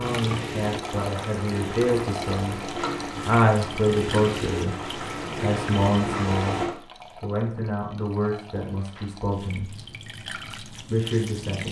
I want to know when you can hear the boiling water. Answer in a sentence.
The boiling water can be heard from 0.0 to 6.7 s.